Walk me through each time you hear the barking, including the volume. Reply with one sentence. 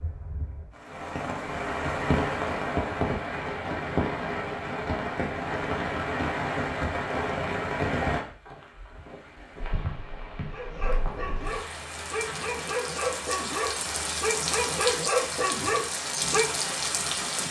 The barking can be heard from 10.5 to 16.6 s, getting louder.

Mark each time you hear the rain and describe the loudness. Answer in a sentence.
You can hear the rain from 0.0 to 17.4 s, getting quieter then louder.